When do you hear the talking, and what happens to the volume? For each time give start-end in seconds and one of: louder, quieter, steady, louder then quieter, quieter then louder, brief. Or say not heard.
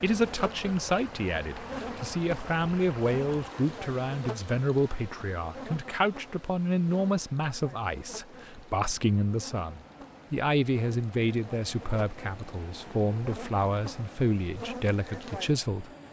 0.0-15.9 steady.